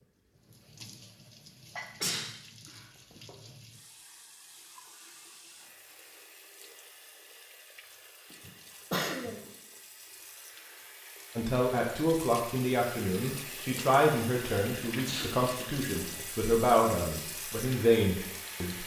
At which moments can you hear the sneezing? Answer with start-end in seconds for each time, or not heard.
1.8-3.3, 8.3-9.5, 14.9-15.3.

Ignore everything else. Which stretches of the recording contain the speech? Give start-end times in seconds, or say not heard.
11.3-18.8.